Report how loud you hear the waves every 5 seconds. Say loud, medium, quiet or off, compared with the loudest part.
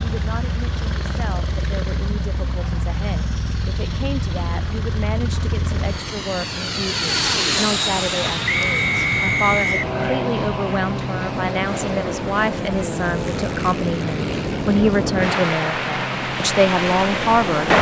off, quiet, medium, loud.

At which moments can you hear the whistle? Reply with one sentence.
You can hear the whistle from 8.4 to 9.9 s.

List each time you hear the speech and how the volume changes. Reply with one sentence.
The speech can be heard from 0.0 to 17.7 s, getting louder.